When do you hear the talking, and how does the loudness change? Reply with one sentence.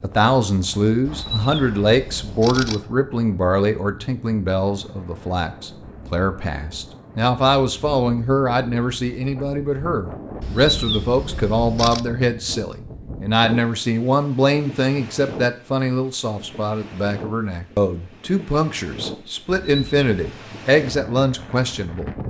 The talking can be heard from 0.0 to 22.1 s, at a steady volume.